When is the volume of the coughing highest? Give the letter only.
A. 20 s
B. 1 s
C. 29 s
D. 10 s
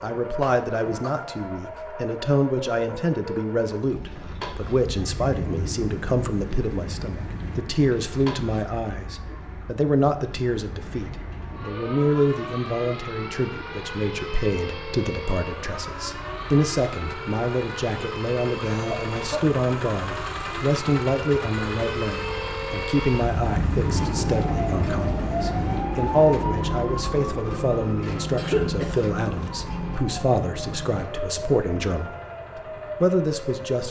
C.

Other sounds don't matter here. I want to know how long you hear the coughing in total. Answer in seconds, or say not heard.
3 s.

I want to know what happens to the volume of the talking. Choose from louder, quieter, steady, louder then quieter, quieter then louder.
steady.